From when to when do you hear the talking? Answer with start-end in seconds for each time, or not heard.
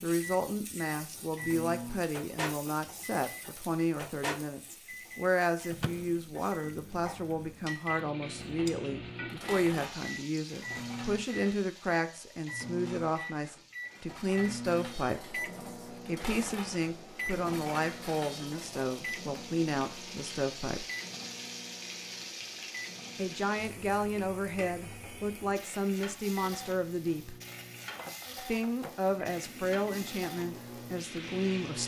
0.0-20.9, 23.1-27.4, 28.4-31.8.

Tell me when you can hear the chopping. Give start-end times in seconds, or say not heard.
not heard.